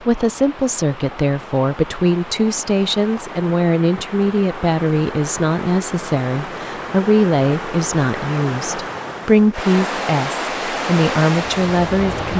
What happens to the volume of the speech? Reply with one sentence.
The volume of the speech stays about the same.